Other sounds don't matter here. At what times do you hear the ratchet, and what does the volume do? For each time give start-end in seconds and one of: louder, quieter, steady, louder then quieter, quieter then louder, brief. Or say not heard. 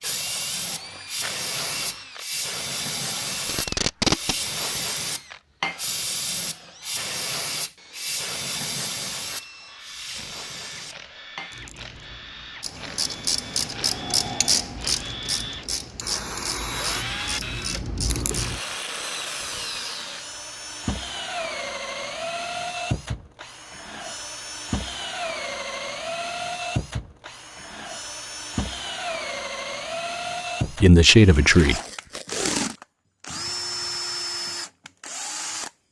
12.6-18.6 quieter.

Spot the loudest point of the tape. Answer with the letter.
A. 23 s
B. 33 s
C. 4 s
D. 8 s
C.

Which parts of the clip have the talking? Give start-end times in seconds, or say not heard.
30.8-31.8.